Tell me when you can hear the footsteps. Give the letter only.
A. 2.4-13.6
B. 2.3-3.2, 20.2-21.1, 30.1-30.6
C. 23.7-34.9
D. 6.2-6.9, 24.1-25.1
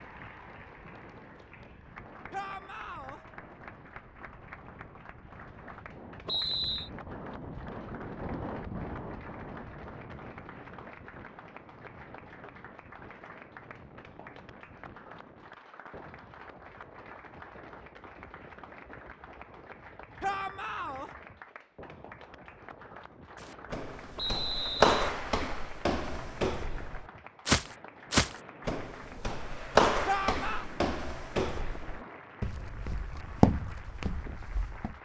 C.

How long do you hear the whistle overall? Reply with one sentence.
You can hear the whistle for 2 seconds altogether.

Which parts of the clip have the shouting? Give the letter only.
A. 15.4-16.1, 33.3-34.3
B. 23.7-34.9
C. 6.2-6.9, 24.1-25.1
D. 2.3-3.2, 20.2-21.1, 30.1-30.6
D.